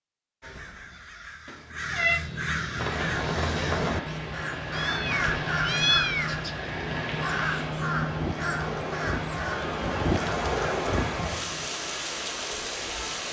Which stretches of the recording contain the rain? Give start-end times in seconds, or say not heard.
2.8-13.2.